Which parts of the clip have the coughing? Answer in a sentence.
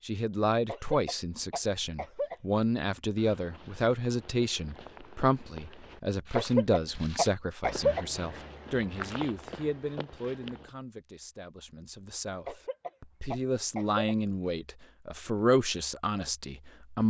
The coughing can be heard from 0.7 to 2.4 s, from 6.3 to 8.1 s and from 12.4 to 14.2 s.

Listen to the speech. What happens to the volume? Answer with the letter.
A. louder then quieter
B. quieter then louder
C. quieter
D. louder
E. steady
B.